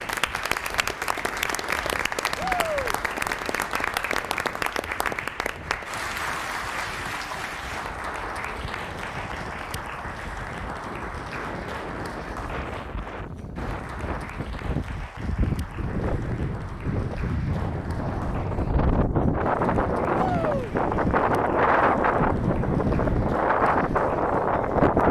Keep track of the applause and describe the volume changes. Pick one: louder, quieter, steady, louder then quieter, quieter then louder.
quieter.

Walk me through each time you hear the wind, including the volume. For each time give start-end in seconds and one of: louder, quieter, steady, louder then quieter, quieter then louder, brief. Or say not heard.
0.0-25.0 louder.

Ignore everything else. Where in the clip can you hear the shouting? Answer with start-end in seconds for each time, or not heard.
2.4-3.0, 20.1-20.8.